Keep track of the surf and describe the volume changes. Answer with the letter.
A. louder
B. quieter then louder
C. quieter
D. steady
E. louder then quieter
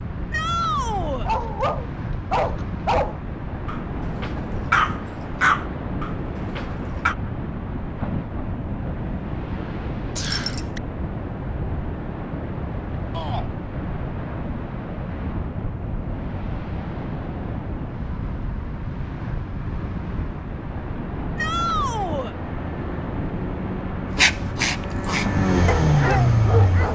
D.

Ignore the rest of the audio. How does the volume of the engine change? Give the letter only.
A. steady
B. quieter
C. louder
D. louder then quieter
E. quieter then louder
C.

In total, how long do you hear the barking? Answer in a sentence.
You can hear the barking for 9 seconds altogether.